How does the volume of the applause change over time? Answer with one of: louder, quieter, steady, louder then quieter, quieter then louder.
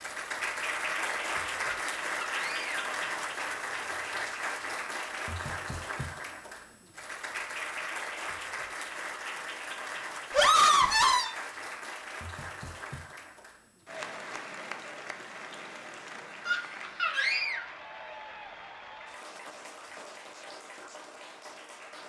quieter.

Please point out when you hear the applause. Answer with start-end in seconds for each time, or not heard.
0.0-22.0.